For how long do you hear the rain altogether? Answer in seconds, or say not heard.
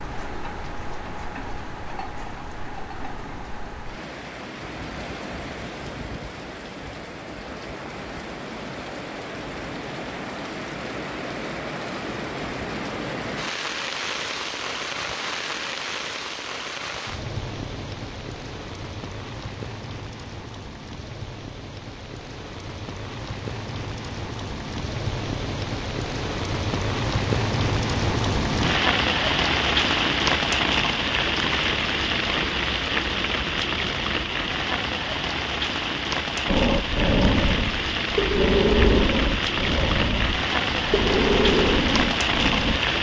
43 s.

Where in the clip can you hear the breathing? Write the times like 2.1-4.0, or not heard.
36.5-42.8.